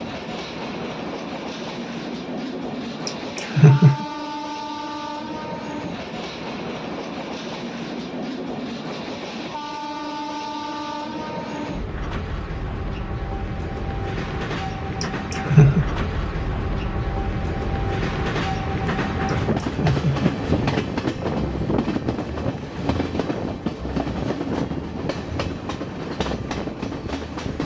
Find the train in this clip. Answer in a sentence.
You can hear the train from 0.0 to 27.6 s.